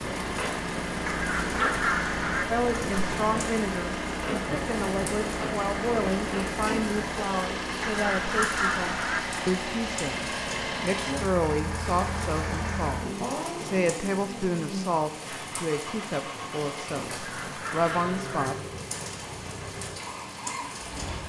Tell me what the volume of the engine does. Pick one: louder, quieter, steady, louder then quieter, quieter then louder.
quieter.